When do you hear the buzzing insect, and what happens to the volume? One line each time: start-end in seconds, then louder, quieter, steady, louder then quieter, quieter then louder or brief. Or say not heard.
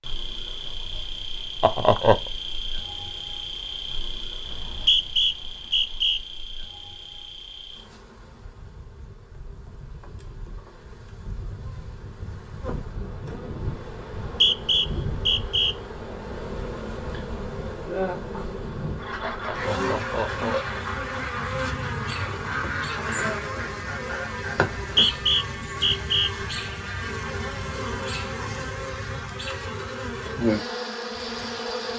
0.0-31.9 quieter then louder.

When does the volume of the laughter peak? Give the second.
2 s.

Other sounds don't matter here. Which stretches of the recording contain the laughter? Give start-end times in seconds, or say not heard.
1.6-2.2, 19.2-20.8.